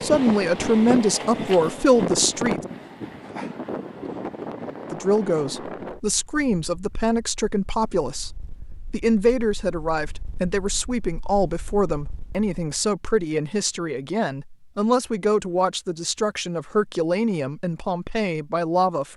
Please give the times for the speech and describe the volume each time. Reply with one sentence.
You can hear the speech briefly from 0.0 to 2.6 s; and from 4.9 to 19.1 s, at a steady volume.